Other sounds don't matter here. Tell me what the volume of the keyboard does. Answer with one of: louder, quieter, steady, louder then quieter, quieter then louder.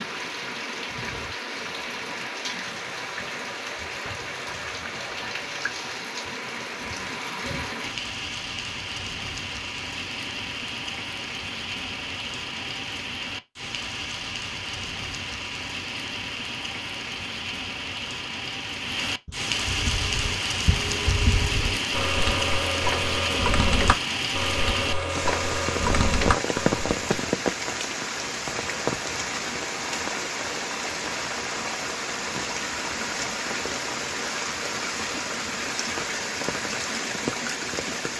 louder.